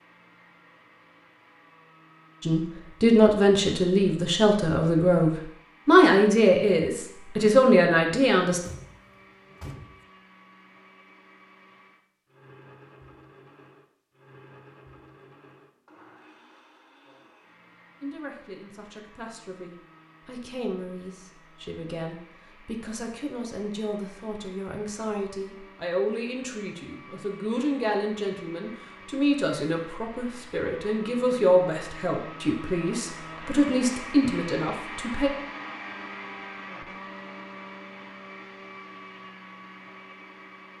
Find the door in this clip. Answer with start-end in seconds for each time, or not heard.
8.6-10.1.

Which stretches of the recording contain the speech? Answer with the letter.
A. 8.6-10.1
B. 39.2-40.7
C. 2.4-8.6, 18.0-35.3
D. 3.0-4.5
C.